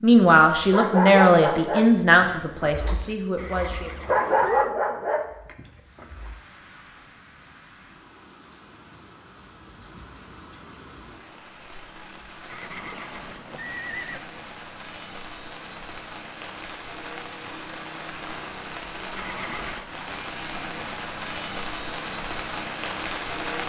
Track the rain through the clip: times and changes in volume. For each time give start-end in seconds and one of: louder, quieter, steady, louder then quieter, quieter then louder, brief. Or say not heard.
5.6-23.6 louder.